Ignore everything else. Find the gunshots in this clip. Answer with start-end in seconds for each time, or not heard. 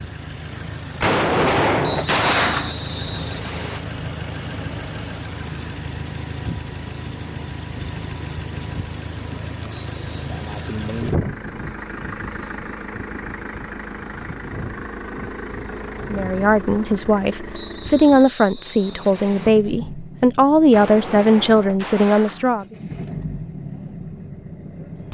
1.0-2.8, 20.7-22.4.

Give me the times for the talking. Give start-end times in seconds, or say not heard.
16.1-22.8.